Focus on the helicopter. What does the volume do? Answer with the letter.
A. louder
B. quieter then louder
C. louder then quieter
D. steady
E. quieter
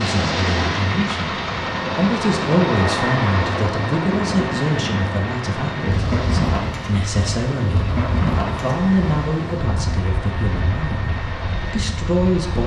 E.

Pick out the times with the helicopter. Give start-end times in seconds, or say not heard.
0.0-12.6.